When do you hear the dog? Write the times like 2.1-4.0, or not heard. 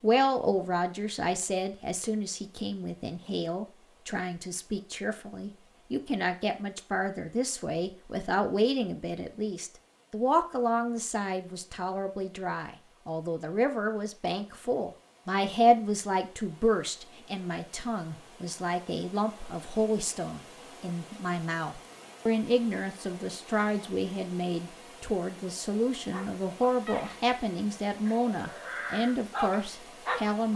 26.1-27.2, 28.0-30.5.